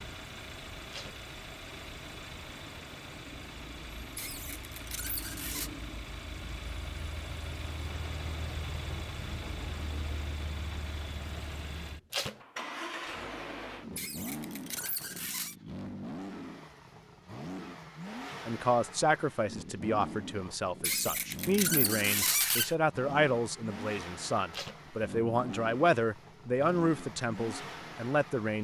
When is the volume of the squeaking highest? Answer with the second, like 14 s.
22 s.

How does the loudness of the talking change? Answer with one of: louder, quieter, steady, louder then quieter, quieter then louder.
steady.